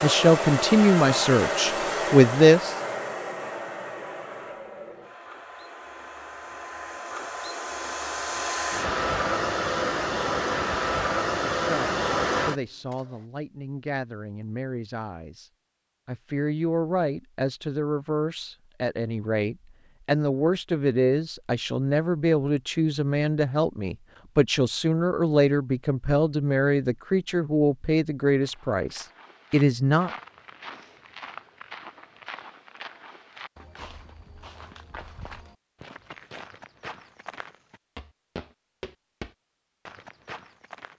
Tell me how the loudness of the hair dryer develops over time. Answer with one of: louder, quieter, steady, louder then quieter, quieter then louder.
quieter then louder.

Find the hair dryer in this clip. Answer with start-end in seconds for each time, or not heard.
0.0-12.9.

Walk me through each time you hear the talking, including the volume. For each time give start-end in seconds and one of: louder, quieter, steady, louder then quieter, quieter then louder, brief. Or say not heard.
0.0-2.7 brief
11.3-30.1 louder.